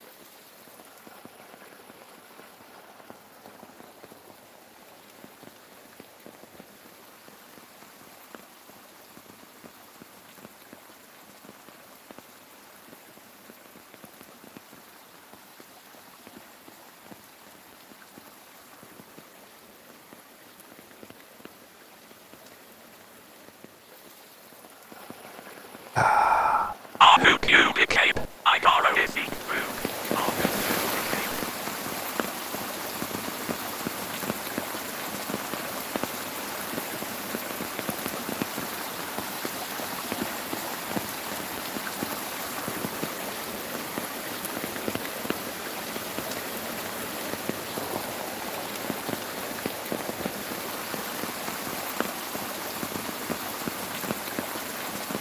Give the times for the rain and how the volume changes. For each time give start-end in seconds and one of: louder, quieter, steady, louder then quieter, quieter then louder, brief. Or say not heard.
0.0-55.1 louder.